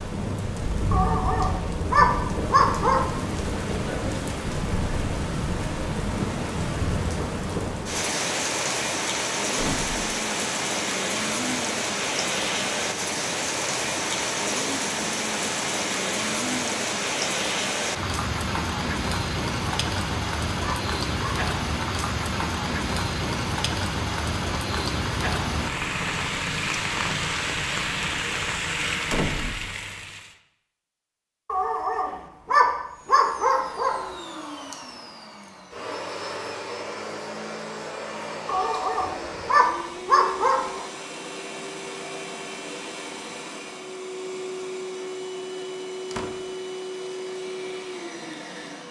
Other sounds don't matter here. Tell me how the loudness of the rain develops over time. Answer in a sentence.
The loudness of the rain stays about the same.